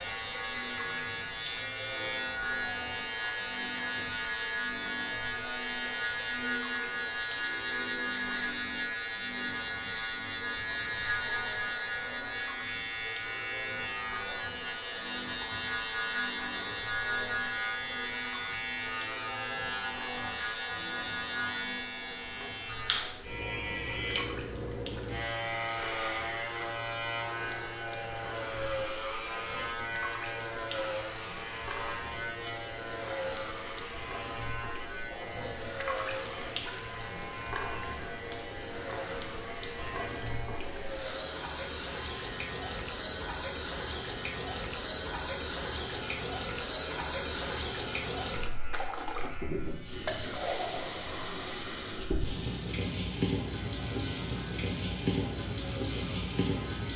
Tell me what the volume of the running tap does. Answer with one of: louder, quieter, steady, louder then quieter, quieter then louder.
louder.